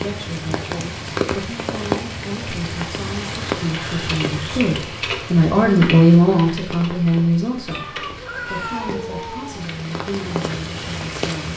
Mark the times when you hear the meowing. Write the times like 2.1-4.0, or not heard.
7.7-9.7.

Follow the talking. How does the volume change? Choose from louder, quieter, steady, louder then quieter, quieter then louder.
louder then quieter.